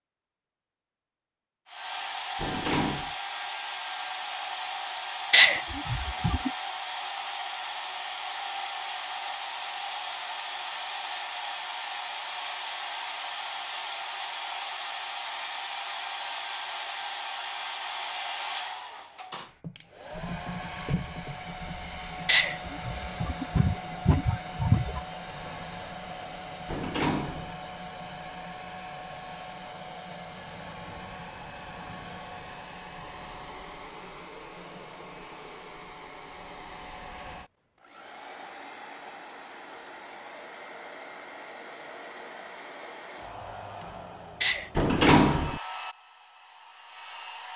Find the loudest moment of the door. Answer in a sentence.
The volume of the door peaks at 45 seconds.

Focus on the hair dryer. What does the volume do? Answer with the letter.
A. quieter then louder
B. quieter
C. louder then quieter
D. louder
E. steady
B.